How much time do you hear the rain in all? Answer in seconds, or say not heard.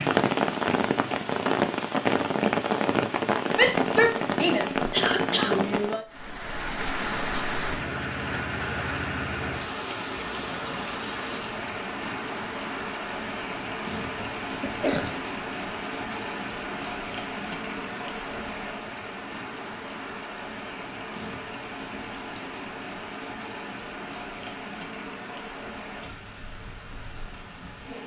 28 s.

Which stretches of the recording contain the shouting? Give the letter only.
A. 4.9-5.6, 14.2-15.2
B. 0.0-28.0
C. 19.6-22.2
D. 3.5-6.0
D.